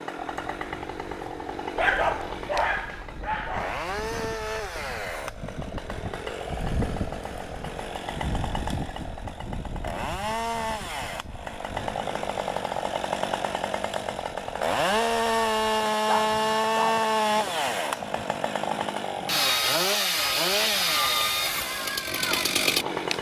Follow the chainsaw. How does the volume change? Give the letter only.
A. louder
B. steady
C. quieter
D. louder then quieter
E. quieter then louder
A.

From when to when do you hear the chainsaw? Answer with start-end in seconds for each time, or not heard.
0.0-23.1.